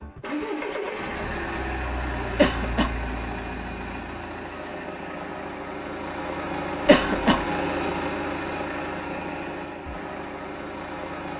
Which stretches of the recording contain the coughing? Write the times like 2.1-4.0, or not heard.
2.4-3.0, 6.8-7.5.